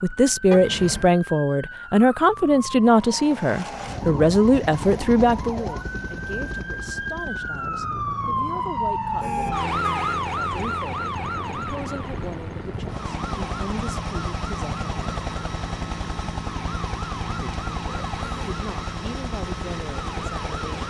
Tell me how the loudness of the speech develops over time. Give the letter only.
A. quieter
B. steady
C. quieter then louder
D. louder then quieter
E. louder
A.